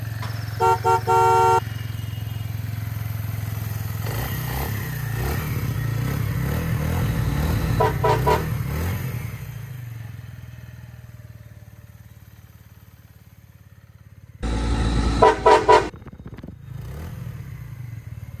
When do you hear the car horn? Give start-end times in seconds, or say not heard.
0.2-1.6, 7.0-8.5, 14.4-15.9.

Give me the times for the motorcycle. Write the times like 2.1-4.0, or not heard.
0.0-18.3.